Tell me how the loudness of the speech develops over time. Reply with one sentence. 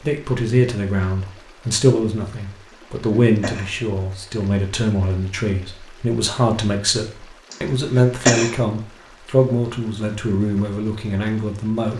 The loudness of the speech stays about the same.